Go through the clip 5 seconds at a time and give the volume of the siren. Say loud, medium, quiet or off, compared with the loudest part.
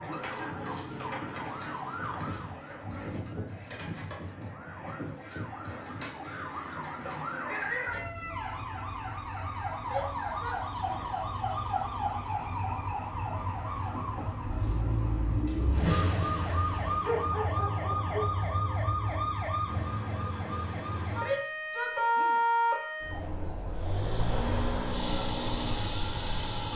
medium, medium, loud, loud, loud, medium.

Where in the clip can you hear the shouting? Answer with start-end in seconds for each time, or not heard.
9.8-11.2, 21.1-22.4.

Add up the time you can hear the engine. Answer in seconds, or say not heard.
3 s.